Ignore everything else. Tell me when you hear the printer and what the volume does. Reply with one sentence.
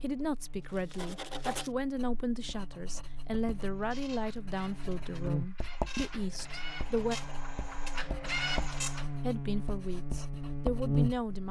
You can hear the printer from 3.5 to 9.1 s, getting louder.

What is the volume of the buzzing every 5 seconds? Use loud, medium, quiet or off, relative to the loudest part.
quiet, medium, loud.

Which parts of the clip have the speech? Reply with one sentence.
You can hear the speech from 0.0 to 7.2 s and from 9.2 to 11.4 s.